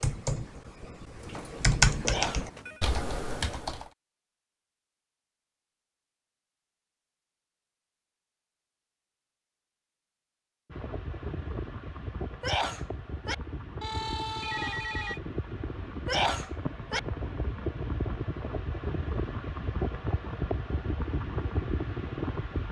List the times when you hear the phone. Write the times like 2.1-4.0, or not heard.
1.1-2.8, 13.8-15.2.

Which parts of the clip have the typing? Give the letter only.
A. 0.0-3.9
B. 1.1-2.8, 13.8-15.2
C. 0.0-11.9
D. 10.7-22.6
A.